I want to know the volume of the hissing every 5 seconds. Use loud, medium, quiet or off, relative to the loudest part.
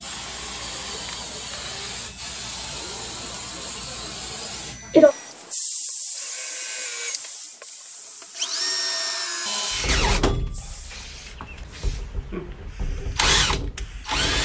loud, loud, quiet.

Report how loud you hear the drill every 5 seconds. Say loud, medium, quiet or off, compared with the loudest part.
quiet, loud, loud.